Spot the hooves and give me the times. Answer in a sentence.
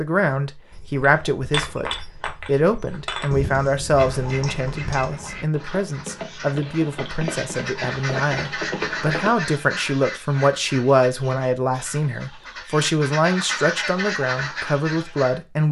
You can hear the hooves from 0.7 to 9.3 s.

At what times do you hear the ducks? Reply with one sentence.
You can hear the ducks from 4.0 to 15.4 s.